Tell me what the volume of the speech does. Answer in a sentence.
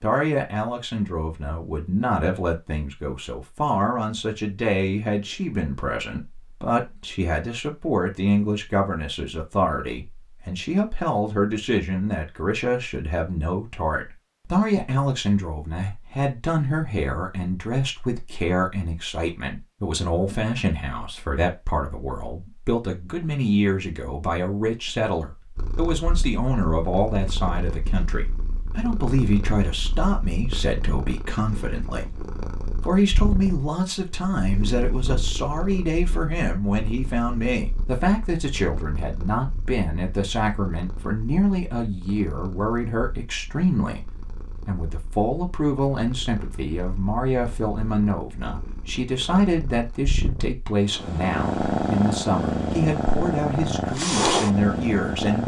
The volume of the speech stays about the same.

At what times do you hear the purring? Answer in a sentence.
The purring can be heard from 25.6 to 55.4 s.